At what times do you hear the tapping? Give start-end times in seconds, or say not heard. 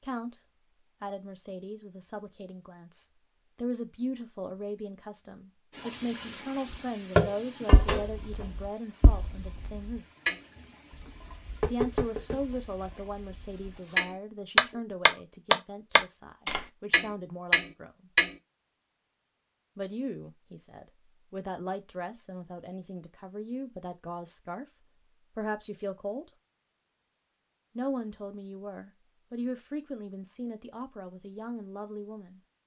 7.2-18.3.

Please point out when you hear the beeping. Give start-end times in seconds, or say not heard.
not heard.